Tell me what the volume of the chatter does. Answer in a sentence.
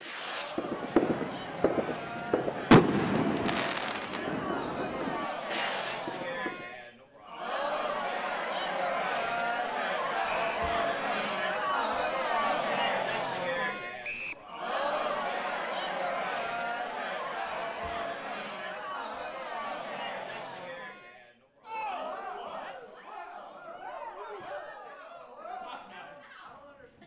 The loudness of the chatter goes up, then down.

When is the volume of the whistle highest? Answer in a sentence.
The loudest moment of the whistle is at 14 seconds.